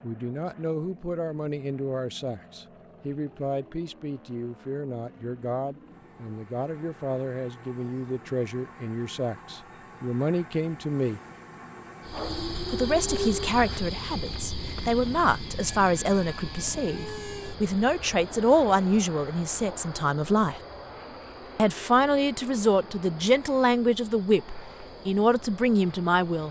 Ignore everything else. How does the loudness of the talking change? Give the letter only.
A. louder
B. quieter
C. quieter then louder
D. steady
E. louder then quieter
A.